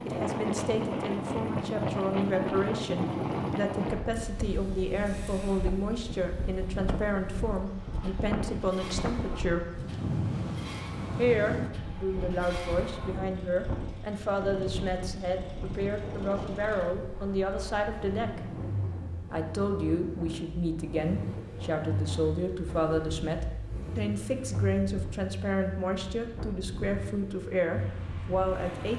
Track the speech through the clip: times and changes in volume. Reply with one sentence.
You can hear the speech from 0.1 to 9.7 s, at a steady volume; from 11.2 to 18.5 s, at a steady volume; and from 19.3 to 28.9 s, at a steady volume.